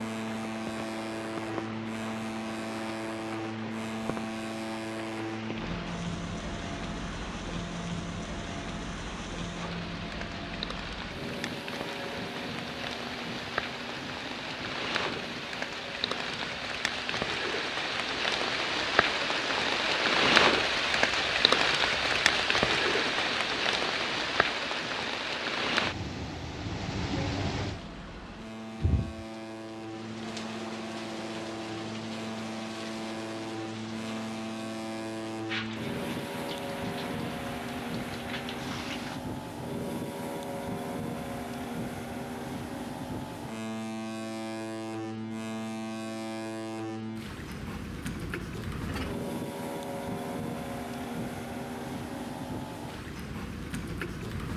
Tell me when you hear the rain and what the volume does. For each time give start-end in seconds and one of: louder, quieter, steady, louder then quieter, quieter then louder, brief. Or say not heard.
0.0-39.2 louder then quieter.